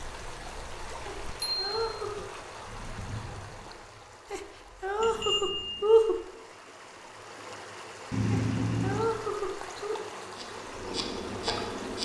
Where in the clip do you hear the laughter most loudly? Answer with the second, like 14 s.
6 s.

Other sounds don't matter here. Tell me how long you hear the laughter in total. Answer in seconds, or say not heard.
5 s.